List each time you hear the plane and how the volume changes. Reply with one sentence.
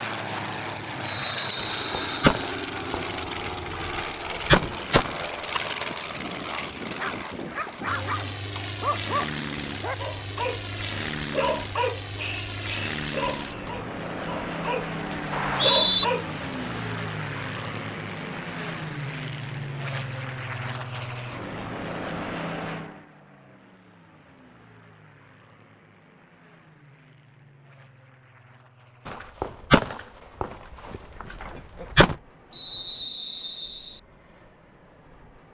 You can hear the plane from 0.0 to 35.5 s, getting quieter.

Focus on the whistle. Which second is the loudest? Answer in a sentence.
The volume of the whistle peaks at 16 seconds.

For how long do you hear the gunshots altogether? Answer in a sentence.
You can hear the gunshots for 7 seconds altogether.